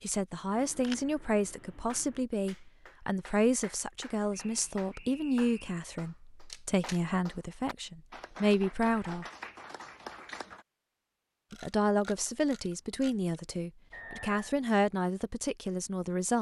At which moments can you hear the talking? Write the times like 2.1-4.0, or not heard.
0.0-9.2, 11.5-16.3.